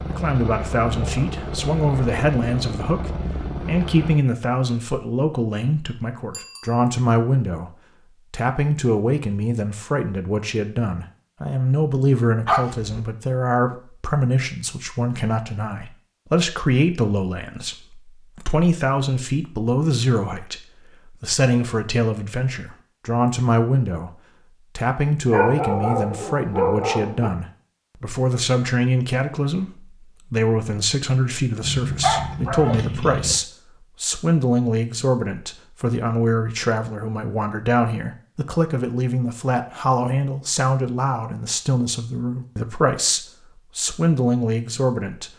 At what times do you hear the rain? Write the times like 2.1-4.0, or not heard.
not heard.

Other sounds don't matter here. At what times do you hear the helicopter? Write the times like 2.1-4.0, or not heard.
0.0-4.2.